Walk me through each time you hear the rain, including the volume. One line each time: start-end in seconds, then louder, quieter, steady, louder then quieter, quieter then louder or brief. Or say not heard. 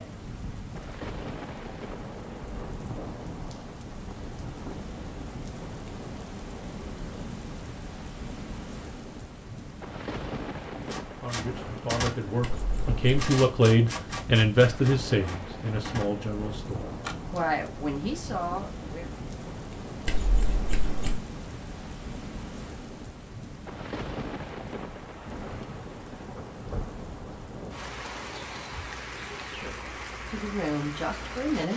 0.0-31.7 steady.